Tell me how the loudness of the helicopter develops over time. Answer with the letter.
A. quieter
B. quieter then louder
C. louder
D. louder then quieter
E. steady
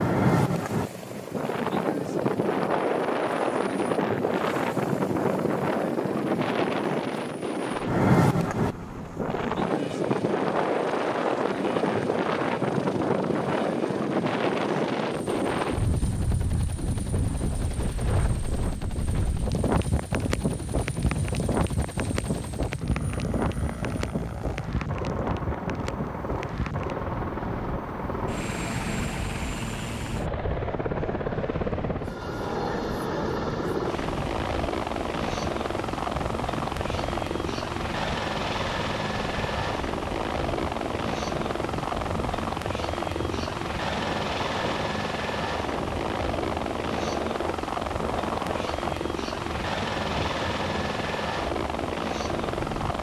C.